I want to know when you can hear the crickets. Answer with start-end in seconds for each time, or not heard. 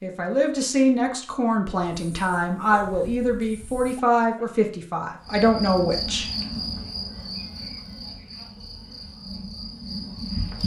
5.2-10.6.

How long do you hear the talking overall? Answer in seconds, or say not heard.
6 s.